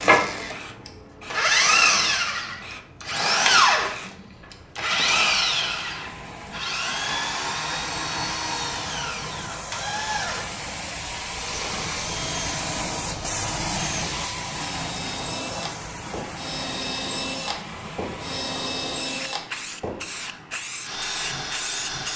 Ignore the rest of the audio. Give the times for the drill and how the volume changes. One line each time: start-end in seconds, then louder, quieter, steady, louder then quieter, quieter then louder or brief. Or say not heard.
0.0-22.1 quieter.